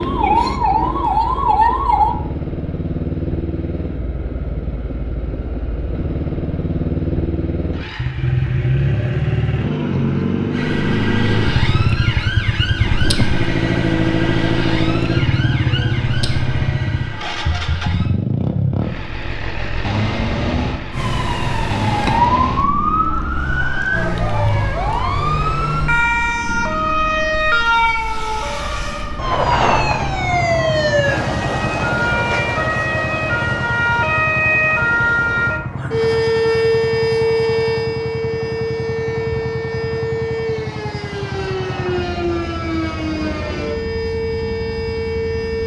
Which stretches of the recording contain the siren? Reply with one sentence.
You can hear the siren from 0.0 to 2.1 s, from 10.5 to 18.1 s and from 20.9 to 45.6 s.